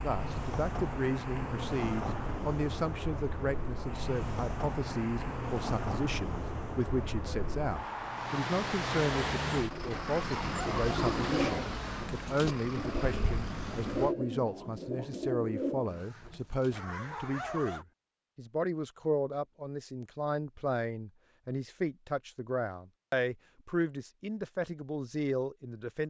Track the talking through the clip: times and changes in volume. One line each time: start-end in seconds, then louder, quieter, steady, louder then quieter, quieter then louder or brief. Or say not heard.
0.0-26.0 steady.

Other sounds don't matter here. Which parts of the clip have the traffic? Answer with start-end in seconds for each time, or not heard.
0.0-14.2.